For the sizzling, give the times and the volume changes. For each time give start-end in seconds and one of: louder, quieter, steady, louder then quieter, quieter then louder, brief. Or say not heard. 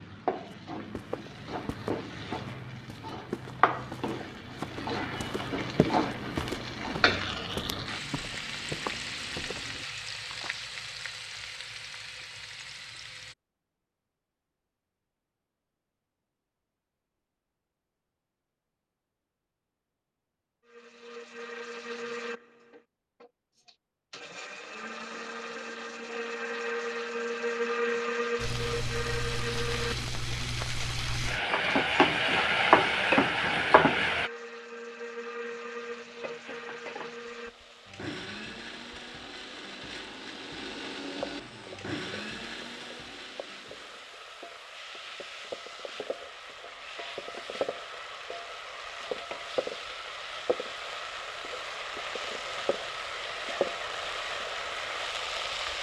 0.0-13.3 louder then quieter
28.4-34.3 louder
35.8-55.7 louder.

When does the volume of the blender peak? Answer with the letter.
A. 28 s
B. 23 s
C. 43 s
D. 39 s
A.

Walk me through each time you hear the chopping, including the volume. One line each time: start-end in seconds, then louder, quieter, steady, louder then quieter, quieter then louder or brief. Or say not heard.
not heard.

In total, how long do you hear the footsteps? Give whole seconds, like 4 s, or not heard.
10 s.